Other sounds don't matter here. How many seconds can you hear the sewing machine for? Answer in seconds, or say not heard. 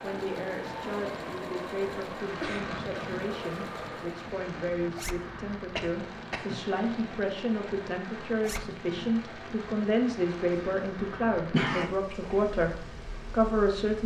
4 s.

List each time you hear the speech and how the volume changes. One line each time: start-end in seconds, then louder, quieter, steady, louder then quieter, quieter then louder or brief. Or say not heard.
0.0-14.0 louder.